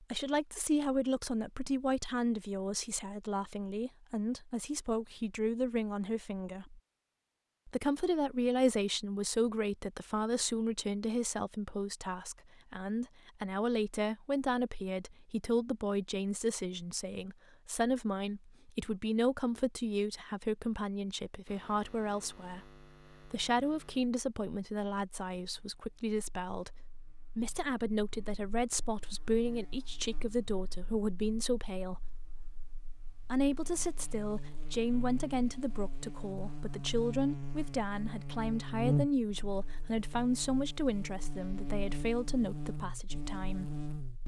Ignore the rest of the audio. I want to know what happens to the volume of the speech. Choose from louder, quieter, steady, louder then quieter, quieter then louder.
steady.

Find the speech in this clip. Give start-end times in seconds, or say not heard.
0.0-6.8, 7.7-26.7, 27.4-32.1, 33.2-43.7.